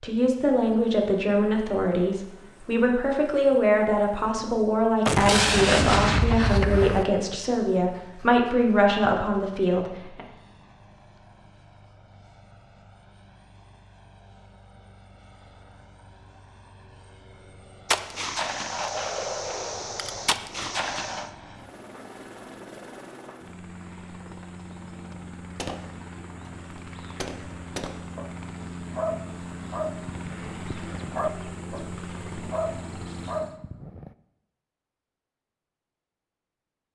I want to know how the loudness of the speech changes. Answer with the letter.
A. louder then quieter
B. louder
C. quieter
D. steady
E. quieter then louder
D.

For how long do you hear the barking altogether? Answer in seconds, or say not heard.
6 s.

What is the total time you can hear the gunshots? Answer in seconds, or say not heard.
8 s.